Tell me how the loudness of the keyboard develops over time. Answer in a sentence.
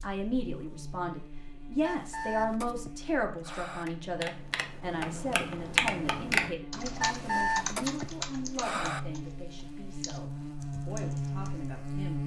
The loudness of the keyboard goes up, then down.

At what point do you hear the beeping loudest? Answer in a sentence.
The loudest moment of the beeping is at 7 seconds.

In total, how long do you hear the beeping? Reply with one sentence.
You can hear the beeping for 4 seconds altogether.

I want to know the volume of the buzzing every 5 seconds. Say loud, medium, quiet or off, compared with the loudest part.
quiet, medium, loud.